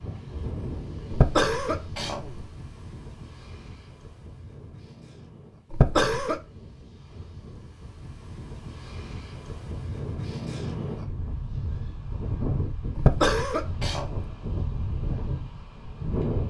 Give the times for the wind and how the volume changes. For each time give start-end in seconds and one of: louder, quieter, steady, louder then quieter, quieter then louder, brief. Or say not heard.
0.0-16.4 quieter then louder.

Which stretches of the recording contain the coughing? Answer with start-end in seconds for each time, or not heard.
1.1-2.5, 5.7-6.4, 12.9-14.3.